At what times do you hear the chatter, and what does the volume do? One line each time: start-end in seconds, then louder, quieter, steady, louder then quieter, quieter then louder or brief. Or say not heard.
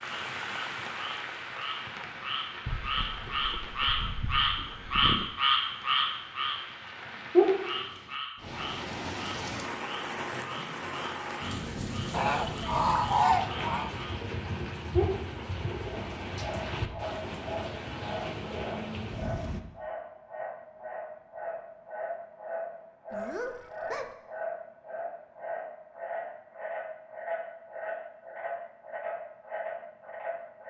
not heard.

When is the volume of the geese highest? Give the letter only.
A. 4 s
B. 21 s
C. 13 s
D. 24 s
C.